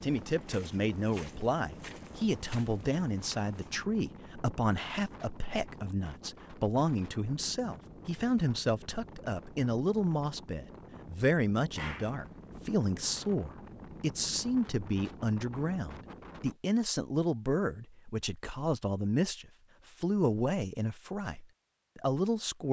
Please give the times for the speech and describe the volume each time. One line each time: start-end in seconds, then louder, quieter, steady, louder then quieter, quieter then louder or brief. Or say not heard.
0.0-22.6 steady.